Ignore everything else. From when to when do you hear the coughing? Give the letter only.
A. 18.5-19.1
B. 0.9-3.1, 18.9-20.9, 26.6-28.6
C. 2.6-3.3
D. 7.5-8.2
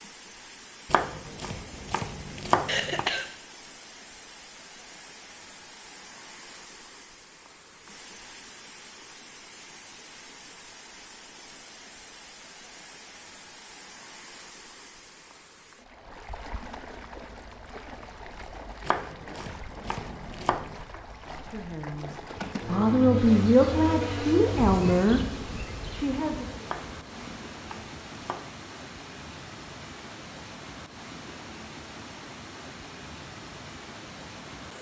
C.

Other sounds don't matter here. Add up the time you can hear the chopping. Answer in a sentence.
The chopping can be heard for 6 seconds in total.